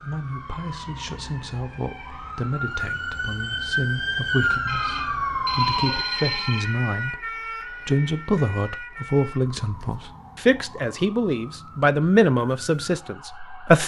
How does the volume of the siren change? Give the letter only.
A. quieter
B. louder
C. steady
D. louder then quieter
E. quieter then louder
D.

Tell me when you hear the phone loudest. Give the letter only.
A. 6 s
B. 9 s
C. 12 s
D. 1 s
A.